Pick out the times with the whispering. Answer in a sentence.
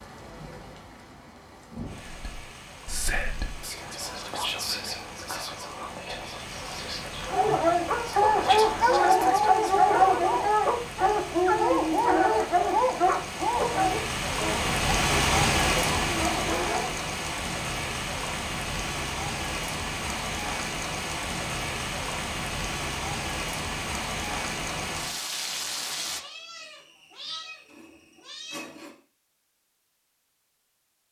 The whispering can be heard from 2.0 to 9.7 s.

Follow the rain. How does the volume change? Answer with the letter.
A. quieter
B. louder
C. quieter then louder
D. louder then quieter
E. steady
B.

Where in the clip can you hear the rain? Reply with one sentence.
You can hear the rain from 0.0 to 26.2 s.